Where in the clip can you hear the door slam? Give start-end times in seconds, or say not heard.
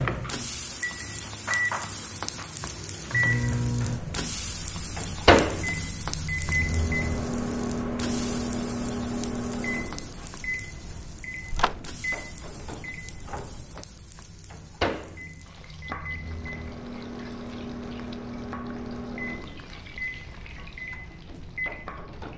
11.5-11.9.